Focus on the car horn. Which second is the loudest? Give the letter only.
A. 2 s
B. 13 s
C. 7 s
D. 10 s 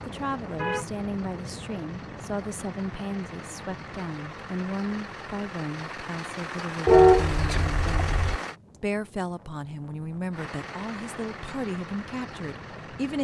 C.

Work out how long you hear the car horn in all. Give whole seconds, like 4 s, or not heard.
2 s.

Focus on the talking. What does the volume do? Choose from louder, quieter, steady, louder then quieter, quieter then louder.
steady.